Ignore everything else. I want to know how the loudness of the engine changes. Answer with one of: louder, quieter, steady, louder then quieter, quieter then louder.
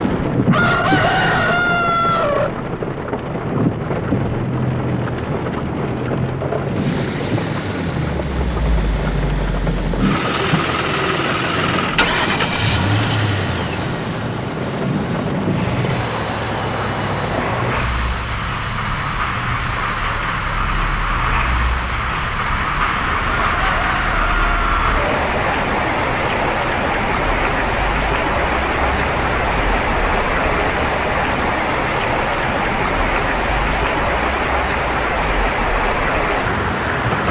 quieter.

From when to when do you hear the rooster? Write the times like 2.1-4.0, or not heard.
0.5-2.5, 23.2-25.0.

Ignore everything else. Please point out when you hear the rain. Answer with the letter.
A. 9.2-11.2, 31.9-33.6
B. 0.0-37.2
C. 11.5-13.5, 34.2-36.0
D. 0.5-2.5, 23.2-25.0
B.